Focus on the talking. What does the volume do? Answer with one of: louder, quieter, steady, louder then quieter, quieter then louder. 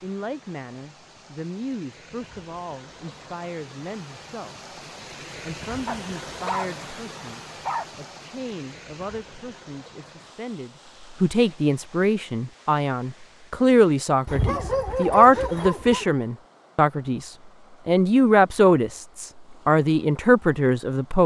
louder.